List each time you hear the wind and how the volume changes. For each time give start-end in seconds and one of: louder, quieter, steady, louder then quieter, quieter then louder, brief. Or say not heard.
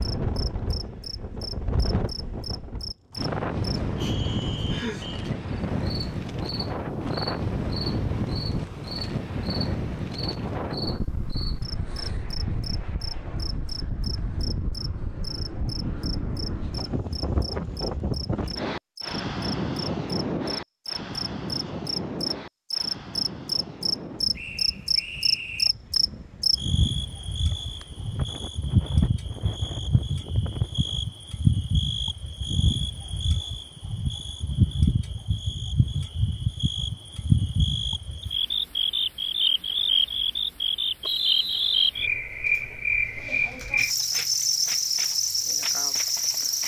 0.0-31.0 quieter.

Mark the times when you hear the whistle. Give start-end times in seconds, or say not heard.
4.0-5.2, 24.4-25.7, 41.0-41.9.